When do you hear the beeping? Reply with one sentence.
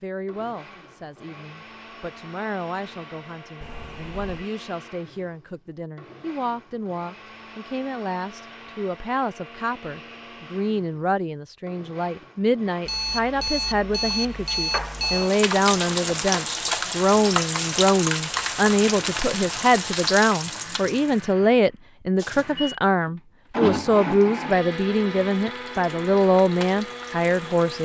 You can hear the beeping from 3.6 to 4.5 s, from 12.8 to 15.3 s and from 22.1 to 22.7 s.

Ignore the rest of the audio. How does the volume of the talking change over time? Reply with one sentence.
The loudness of the talking goes up.